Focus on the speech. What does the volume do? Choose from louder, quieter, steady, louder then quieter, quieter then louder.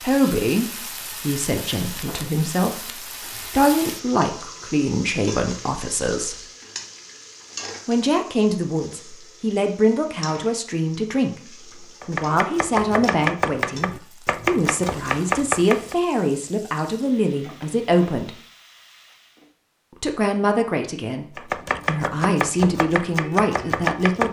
steady.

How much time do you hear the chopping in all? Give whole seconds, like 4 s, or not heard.
7 s.